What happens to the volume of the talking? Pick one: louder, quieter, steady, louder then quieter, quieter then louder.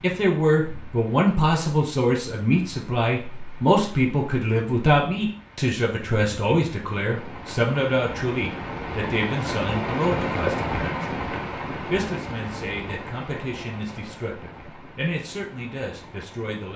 quieter.